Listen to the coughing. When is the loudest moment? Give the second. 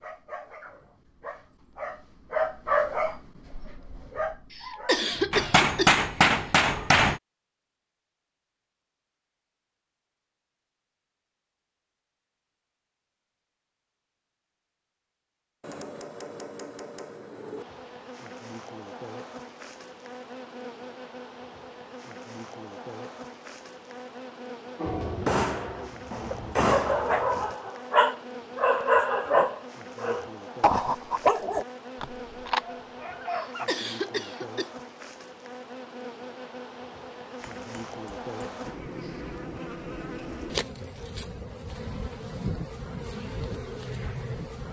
5 s.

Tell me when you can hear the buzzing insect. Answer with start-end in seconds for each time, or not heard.
17.6-44.6.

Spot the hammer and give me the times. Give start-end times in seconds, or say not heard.
5.3-7.2, 15.6-17.6, 24.9-27.5, 37.4-39.2.